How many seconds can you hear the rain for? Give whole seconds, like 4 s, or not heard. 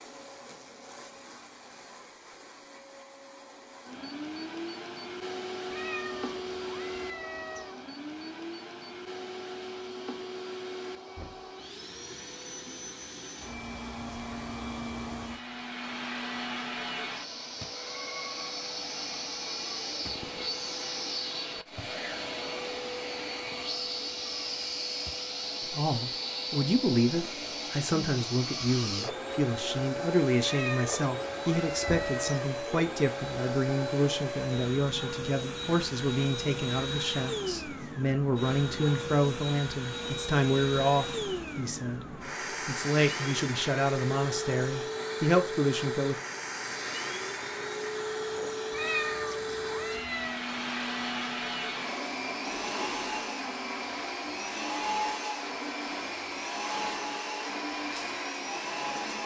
not heard.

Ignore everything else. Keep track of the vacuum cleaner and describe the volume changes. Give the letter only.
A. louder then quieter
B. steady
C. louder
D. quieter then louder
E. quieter
C.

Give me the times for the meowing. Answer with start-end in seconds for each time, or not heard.
5.7-7.8, 30.4-32.4, 48.7-50.5.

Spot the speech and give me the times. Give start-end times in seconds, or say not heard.
25.7-42.0, 42.6-46.1.